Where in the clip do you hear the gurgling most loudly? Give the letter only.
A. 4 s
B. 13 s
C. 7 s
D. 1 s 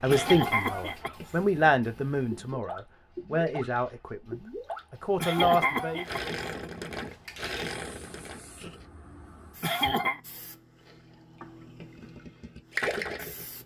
B.